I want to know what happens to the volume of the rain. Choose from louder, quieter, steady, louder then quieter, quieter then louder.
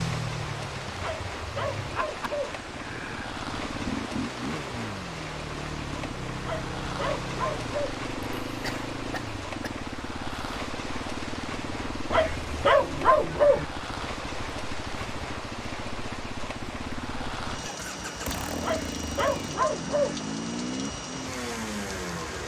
steady.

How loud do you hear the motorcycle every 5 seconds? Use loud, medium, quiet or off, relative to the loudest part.
loud, loud, medium, loud, loud.